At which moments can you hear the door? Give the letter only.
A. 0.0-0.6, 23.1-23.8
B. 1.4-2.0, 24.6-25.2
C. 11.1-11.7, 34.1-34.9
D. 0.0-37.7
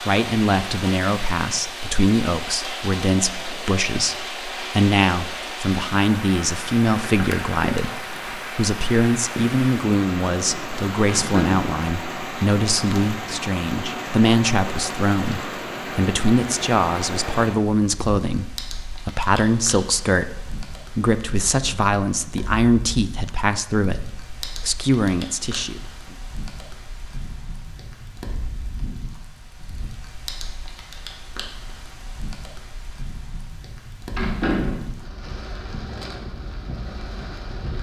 C.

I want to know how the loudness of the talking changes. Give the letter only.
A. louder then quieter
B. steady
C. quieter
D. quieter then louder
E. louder
B.